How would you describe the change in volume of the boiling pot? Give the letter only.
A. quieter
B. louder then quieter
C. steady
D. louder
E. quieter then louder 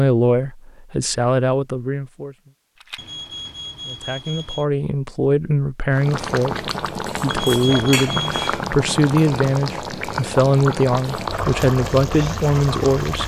C.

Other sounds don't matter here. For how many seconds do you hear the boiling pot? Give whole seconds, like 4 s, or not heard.
7 s.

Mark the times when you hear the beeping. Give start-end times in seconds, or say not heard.
3.0-4.7, 7.2-8.5.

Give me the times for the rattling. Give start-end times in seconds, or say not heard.
2.8-3.4.